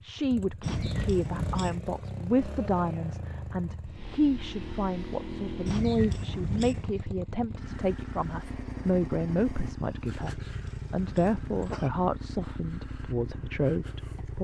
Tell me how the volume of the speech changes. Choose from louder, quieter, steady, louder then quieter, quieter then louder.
steady.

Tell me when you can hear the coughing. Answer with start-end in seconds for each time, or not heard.
0.6-1.8, 5.7-7.0, 10.2-11.9.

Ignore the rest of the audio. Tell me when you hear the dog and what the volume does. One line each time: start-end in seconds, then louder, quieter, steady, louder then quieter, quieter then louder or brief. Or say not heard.
not heard.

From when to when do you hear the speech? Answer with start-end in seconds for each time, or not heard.
0.0-14.3.